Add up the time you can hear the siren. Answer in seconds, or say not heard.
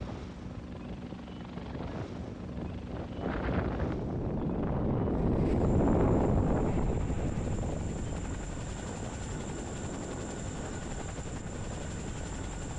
not heard.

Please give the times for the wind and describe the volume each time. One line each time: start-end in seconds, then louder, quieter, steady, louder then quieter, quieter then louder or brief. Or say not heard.
0.0-12.7 louder then quieter.